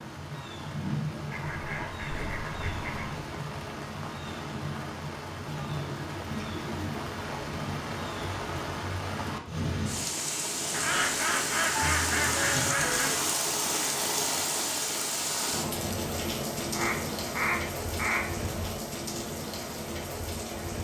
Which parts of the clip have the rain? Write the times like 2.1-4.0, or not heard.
0.0-20.7.